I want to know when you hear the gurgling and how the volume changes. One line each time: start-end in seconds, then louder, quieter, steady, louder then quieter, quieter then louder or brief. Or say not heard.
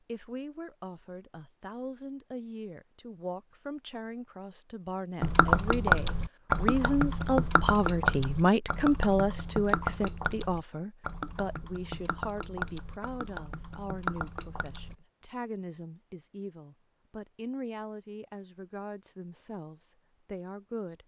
5.2-14.9 quieter.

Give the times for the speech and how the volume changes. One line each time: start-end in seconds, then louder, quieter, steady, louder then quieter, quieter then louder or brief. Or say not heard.
0.1-21.0 louder then quieter.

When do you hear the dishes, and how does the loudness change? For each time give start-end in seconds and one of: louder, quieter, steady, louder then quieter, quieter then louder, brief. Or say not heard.
not heard.